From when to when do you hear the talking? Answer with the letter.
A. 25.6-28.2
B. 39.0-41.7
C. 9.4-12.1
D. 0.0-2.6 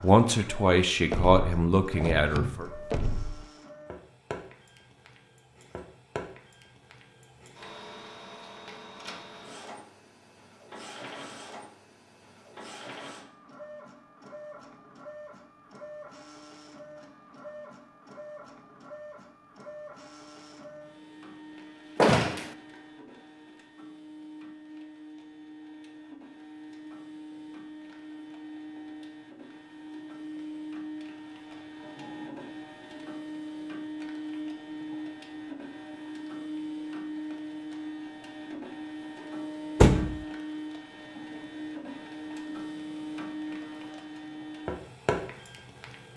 D.